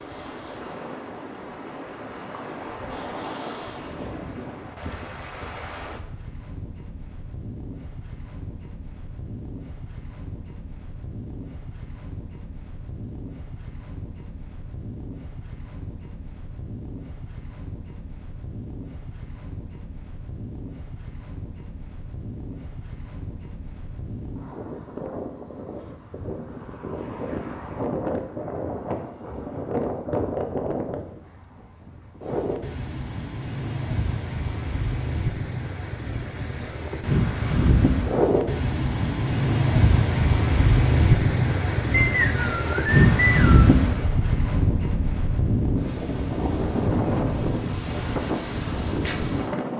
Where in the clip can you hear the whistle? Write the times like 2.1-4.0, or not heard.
41.9-43.8.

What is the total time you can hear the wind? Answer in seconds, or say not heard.
50 s.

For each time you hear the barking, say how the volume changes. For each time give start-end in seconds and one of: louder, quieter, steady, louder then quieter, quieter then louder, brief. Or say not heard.
not heard.